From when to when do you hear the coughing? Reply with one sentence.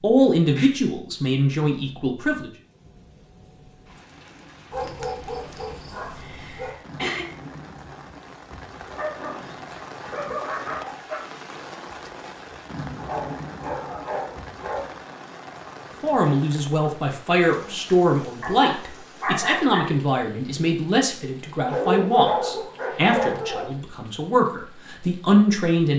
The coughing can be heard from 6.2 to 7.2 s.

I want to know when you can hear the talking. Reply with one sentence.
The talking can be heard from 0.0 to 2.5 s and from 16.0 to 25.9 s.